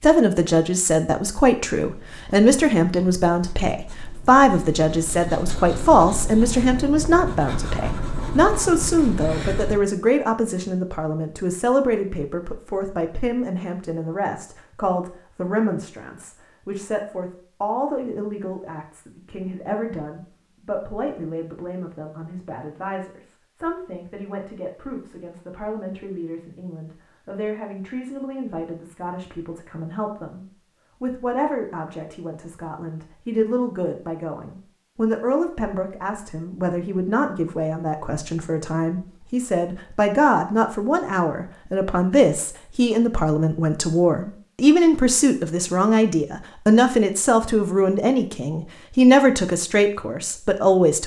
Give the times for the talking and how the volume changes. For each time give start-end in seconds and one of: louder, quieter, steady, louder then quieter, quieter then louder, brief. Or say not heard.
0.0-51.0 quieter then louder.